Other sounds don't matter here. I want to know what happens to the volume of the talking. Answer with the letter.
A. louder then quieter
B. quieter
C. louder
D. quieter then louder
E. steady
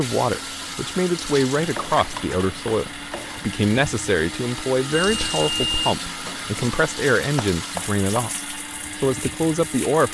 E.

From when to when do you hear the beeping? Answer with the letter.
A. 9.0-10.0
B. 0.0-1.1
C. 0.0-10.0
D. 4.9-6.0
D.